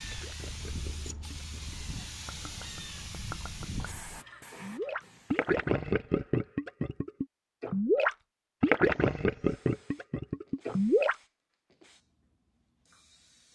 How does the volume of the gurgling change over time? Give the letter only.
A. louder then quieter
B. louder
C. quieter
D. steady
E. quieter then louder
B.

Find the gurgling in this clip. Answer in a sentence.
The gurgling can be heard from 0.0 to 11.2 s.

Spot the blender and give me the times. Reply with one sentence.
The blender can't be heard in this clip.